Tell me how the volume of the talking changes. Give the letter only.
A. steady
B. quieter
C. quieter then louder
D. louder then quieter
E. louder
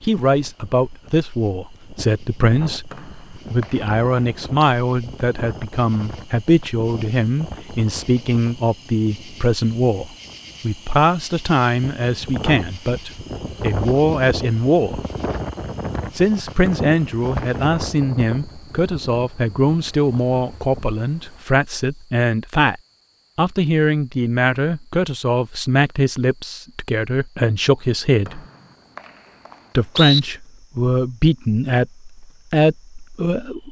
A.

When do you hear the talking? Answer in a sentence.
The talking can be heard from 0.0 to 15.0 s, from 16.1 to 28.4 s and from 29.8 to 33.6 s.